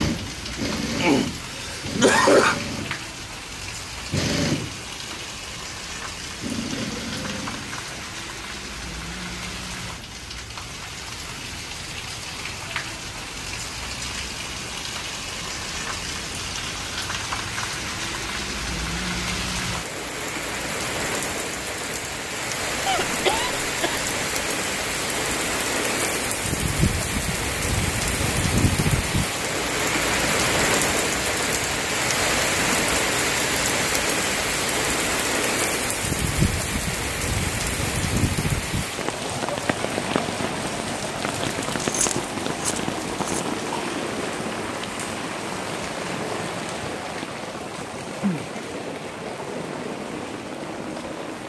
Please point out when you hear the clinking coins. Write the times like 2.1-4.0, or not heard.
41.6-43.4.